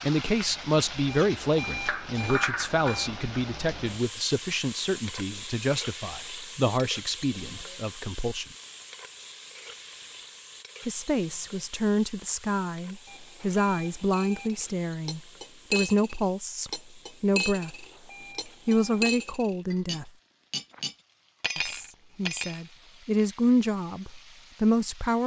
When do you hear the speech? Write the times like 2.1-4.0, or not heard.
0.0-8.4, 10.8-17.9, 18.4-20.1, 21.6-25.2.